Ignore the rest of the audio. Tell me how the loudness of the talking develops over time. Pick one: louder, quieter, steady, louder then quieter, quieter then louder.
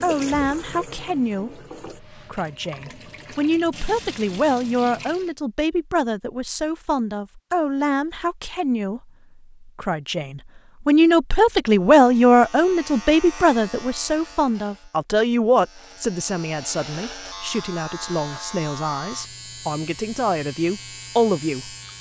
louder then quieter.